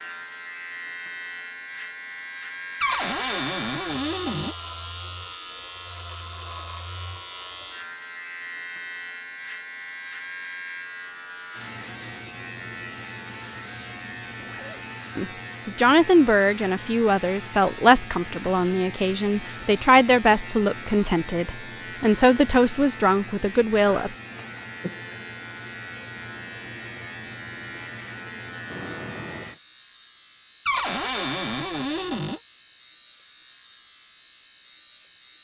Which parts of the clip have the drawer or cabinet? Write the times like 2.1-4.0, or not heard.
2.8-4.5, 30.6-32.4.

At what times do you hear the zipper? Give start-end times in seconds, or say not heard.
14.3-14.8, 28.6-29.6.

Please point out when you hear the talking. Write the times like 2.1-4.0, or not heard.
15.2-24.1.